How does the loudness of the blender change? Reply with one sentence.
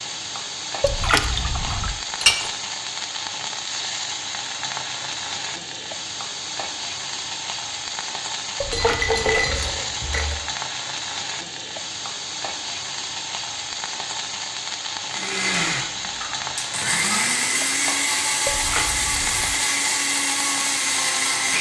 The loudness of the blender stays about the same.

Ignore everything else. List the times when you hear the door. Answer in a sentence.
You can't hear the door here.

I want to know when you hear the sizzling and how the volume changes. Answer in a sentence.
You can hear the sizzling from 0.0 to 21.5 s, at a steady volume.